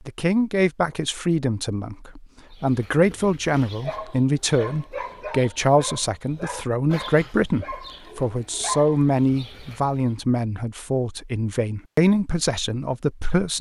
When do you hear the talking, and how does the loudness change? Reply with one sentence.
You can hear the talking from 0.1 to 13.5 s, at a steady volume.